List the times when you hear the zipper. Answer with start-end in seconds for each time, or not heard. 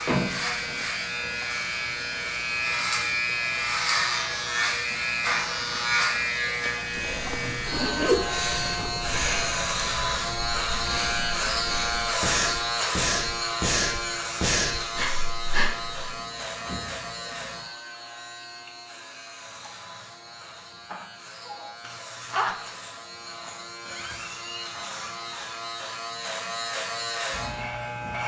7.0-8.9, 21.8-22.6.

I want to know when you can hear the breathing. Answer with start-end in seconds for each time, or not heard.
7.0-15.9.